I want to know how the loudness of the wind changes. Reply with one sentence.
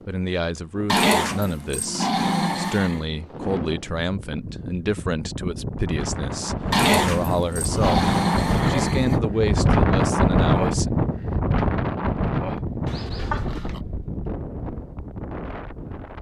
The loudness of the wind goes up, then down.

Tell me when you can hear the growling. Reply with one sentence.
The growling can be heard from 0.8 to 3.0 s, from 6.7 to 9.2 s and from 12.8 to 13.8 s.